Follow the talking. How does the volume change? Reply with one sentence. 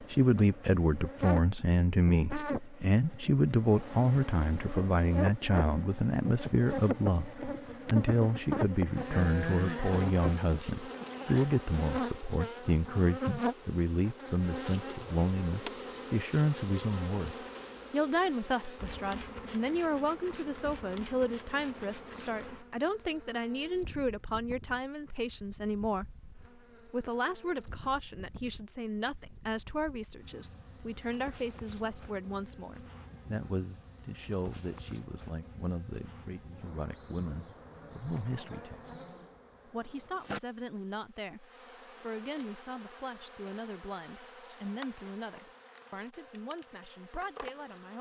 The volume of the talking goes down.